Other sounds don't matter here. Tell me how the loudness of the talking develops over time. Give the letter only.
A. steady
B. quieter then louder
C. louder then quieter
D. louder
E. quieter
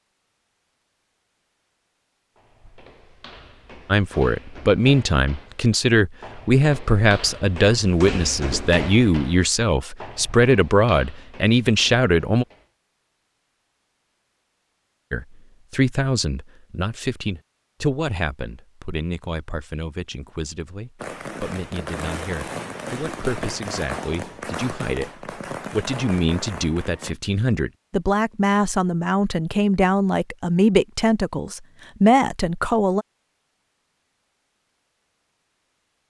B.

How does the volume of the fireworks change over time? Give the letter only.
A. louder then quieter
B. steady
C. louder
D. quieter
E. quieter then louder
B.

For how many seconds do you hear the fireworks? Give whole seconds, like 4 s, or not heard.
6 s.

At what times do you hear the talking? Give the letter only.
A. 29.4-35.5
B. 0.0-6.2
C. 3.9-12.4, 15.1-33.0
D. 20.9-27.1
C.